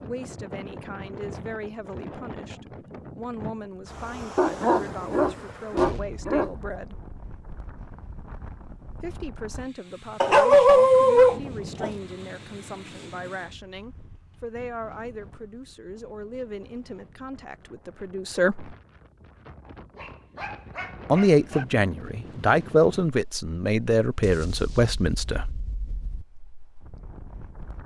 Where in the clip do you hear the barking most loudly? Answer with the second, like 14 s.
11 s.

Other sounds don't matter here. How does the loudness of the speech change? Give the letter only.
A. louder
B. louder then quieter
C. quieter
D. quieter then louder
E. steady
A.